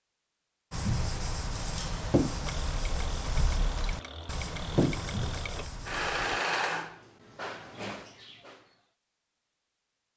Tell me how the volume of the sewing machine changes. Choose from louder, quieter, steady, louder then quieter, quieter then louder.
louder then quieter.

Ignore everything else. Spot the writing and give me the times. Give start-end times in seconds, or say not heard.
0.7-6.4.